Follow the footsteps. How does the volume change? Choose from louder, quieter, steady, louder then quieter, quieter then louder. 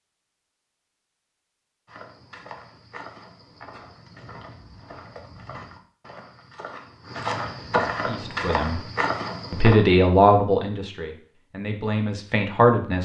louder.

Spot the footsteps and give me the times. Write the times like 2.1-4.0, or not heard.
1.9-9.8.